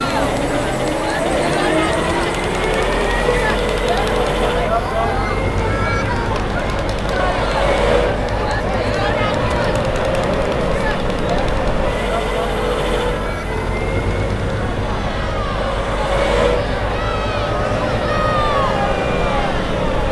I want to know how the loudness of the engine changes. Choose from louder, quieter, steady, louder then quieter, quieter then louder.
steady.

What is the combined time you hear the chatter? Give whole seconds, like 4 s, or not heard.
20 s.